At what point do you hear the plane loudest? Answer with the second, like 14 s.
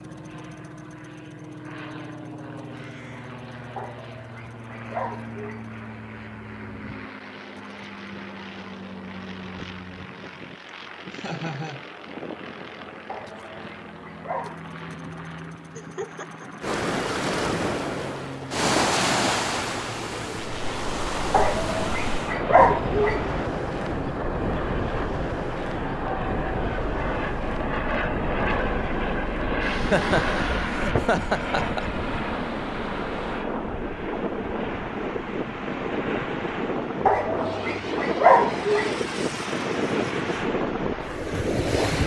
30 s.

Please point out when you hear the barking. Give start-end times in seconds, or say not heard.
3.8-5.7, 13.1-14.7, 21.3-23.2, 37.0-39.0.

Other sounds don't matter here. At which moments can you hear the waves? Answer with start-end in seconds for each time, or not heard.
16.6-42.0.